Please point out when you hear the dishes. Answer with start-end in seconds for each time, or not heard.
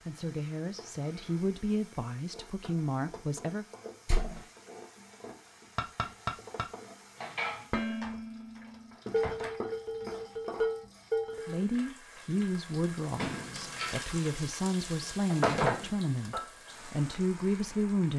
5.8-11.7.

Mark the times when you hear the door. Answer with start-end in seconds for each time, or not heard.
4.0-4.5, 8.0-9.6, 13.2-15.9.